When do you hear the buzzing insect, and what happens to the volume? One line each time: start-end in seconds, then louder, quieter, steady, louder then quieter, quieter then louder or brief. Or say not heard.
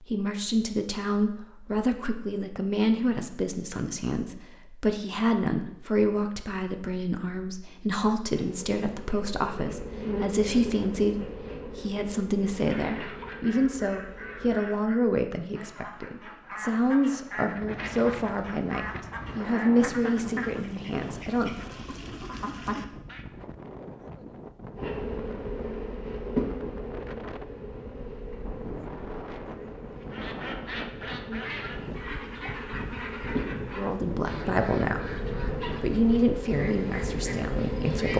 8.2-14.6 louder then quieter
24.8-38.1 quieter then louder.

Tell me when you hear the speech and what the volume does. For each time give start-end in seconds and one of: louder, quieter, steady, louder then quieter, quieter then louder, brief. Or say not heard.
0.0-21.6 steady
33.8-35.1 brief
35.8-38.1 brief.